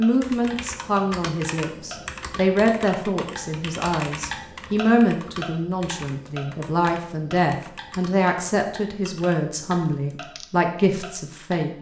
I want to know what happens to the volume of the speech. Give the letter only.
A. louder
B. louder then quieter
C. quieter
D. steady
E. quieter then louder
D.